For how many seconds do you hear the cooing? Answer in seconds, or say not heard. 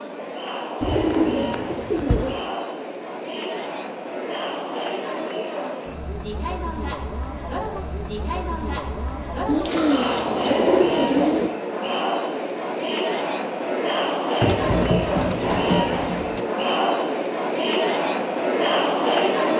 6 s.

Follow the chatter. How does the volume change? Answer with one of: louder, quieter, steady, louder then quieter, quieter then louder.
louder.